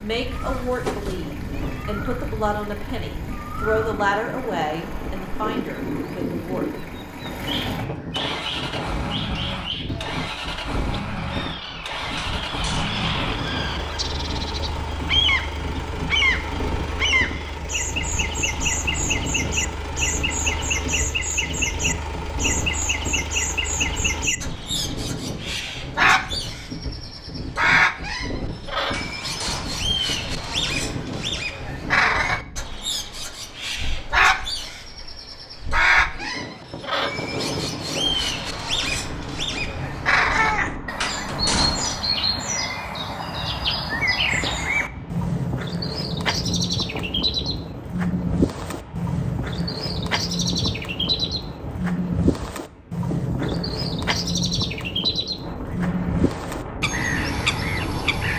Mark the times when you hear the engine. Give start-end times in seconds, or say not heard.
0.0-24.2.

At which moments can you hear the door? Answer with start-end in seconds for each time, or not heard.
12.2-13.1, 28.9-29.9, 41.0-42.1.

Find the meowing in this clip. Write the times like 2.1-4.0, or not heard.
0.3-1.9, 39.8-40.8.